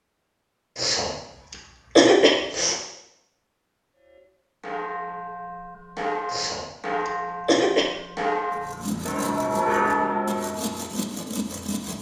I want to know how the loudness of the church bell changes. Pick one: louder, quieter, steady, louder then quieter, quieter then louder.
louder.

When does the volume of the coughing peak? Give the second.
2 s.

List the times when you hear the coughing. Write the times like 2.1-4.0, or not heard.
0.8-2.8, 6.3-7.9.